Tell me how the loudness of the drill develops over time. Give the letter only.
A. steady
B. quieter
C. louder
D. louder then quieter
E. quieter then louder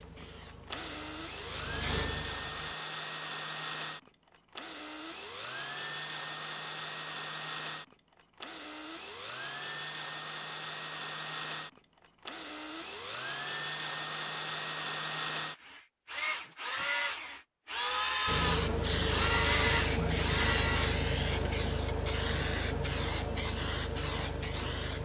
C.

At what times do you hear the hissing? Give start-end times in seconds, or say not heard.
0.0-2.8, 18.2-24.9.